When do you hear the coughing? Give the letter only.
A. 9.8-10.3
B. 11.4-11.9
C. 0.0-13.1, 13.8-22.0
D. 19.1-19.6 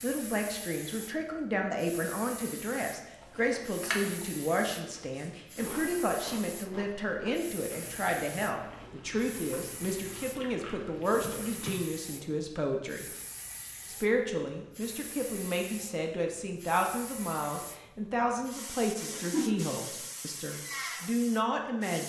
D.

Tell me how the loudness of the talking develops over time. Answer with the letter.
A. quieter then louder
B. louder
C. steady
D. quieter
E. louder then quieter
C.